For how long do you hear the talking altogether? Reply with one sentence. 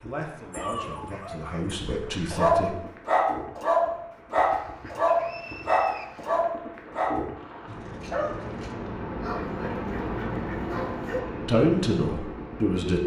The talking can be heard for 4 seconds in total.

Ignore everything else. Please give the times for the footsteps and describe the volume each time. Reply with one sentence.
You can't hear the footsteps here.